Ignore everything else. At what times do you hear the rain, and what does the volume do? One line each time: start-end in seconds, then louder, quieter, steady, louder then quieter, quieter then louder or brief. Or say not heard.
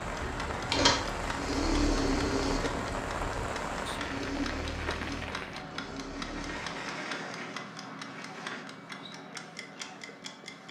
0.0-5.7 steady.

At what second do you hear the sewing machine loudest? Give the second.
1 s.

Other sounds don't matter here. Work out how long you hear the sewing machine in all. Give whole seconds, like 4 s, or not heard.
7 s.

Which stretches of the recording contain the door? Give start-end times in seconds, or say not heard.
6.2-8.7.